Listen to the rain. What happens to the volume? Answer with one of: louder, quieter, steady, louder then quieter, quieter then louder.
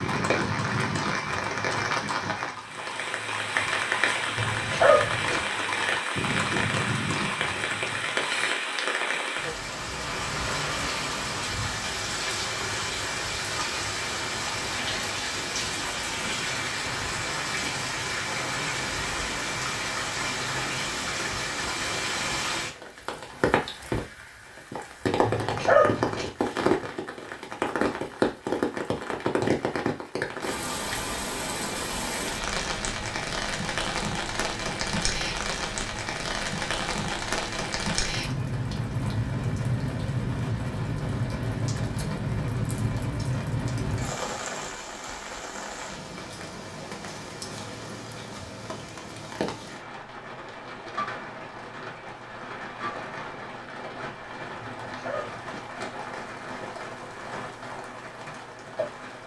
quieter.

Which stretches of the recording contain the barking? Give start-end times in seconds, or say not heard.
4.3-5.4, 25.2-26.3, 54.6-55.6.